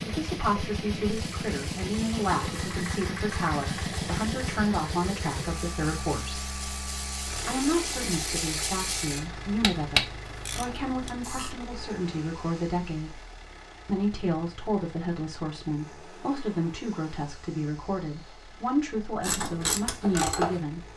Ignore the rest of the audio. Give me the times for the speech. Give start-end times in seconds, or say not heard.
0.0-6.5, 7.5-13.2, 13.8-20.9.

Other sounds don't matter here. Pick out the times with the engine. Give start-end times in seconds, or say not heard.
0.0-20.9.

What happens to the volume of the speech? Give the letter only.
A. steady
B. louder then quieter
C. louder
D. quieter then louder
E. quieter
A.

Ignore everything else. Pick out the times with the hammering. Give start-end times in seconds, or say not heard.
not heard.